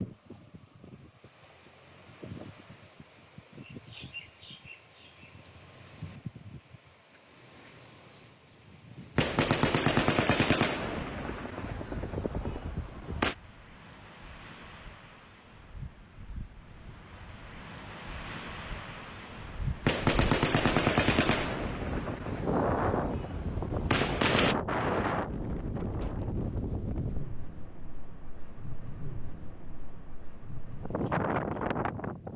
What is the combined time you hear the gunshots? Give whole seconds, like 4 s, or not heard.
9 s.